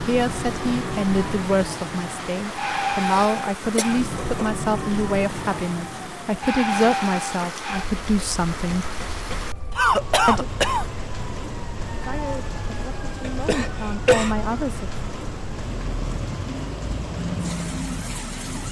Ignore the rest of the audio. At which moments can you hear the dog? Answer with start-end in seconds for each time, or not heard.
not heard.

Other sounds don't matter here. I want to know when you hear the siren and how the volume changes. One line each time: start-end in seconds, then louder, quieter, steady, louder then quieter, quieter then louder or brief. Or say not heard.
0.0-18.6 quieter then louder.